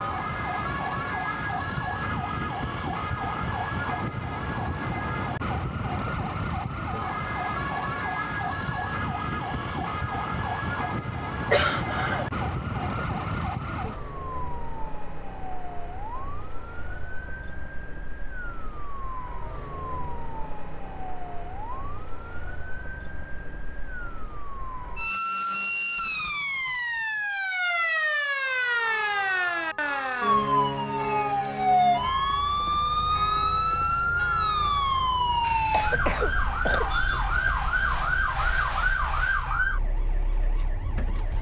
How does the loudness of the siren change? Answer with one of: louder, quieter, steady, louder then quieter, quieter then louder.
quieter then louder.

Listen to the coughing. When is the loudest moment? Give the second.
12 s.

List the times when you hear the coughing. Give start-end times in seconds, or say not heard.
11.5-12.2, 35.7-37.5.